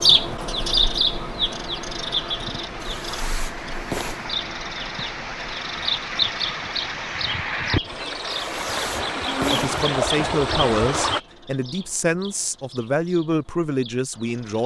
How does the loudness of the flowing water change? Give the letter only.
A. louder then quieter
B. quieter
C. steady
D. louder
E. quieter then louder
D.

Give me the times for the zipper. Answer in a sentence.
The zipper can be heard from 2.8 to 4.2 s and from 8.3 to 9.8 s.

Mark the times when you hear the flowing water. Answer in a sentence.
You can hear the flowing water from 0.0 to 11.2 s.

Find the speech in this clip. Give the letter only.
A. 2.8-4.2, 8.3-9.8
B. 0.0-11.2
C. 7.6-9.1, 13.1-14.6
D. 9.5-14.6
D.